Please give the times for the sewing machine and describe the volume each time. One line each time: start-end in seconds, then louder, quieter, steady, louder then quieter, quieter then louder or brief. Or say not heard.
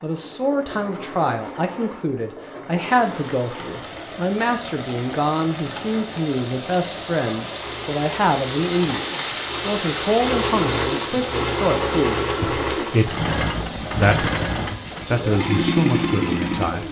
0.0-16.8 louder.